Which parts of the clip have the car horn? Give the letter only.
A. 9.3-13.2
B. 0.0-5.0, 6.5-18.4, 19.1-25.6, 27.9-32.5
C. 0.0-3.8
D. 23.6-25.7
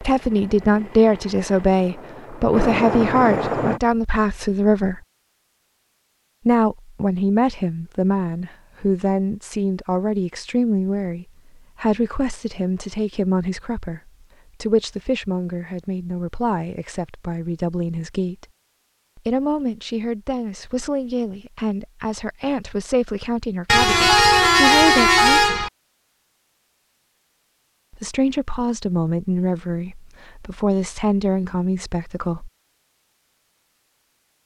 D.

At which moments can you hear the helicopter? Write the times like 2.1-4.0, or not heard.
0.0-3.8.